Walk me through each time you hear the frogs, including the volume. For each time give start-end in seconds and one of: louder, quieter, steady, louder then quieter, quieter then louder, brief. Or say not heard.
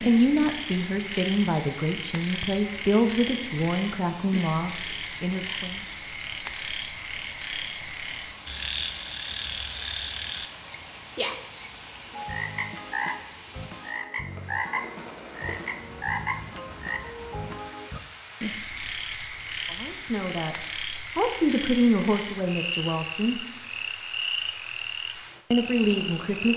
0.0-26.5 steady.